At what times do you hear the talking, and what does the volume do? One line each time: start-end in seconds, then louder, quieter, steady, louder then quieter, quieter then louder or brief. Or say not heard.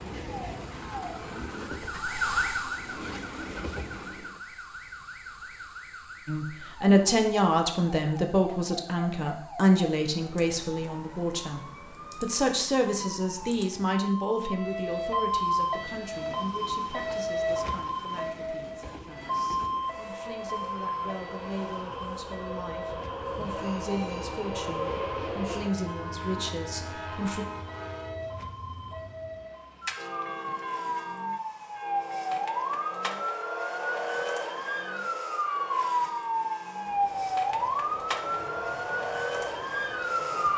6.2-27.4 quieter then louder.